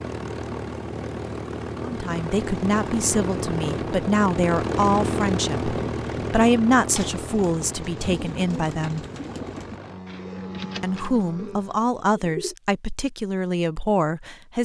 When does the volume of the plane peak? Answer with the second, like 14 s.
5 s.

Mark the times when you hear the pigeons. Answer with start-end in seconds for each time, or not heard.
7.0-12.6.